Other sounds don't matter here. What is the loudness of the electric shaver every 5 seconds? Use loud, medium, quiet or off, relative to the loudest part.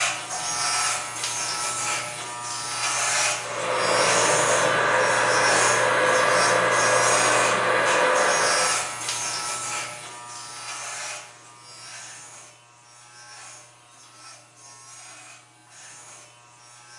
loud, loud, quiet, quiet.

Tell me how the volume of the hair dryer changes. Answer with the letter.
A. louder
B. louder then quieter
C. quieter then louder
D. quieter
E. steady
E.